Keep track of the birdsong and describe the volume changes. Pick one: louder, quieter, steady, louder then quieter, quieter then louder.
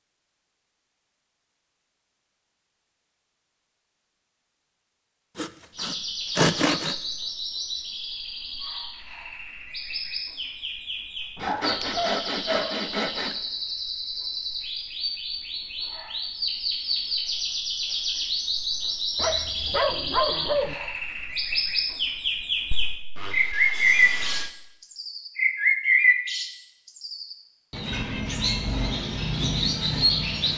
louder.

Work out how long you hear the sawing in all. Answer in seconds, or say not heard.
5 s.